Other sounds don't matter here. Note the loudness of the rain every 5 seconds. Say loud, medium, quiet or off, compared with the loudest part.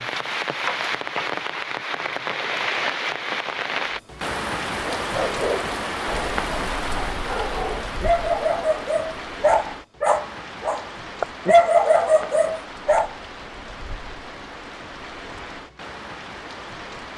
loud, loud, medium, medium.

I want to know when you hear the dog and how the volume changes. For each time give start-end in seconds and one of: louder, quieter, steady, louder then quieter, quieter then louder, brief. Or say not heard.
5.0-13.2 louder.